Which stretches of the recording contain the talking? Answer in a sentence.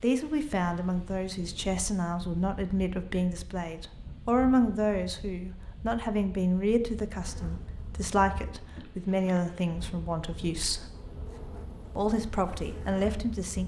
The talking can be heard from 0.0 to 10.8 s and from 11.9 to 13.6 s.